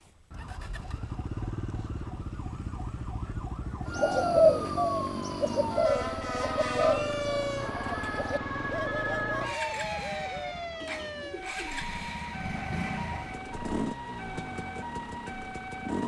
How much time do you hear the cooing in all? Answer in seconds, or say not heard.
8 s.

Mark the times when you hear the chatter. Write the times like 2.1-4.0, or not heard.
not heard.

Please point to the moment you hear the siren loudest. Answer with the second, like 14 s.
7 s.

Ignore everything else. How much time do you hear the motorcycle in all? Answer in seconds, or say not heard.
16 s.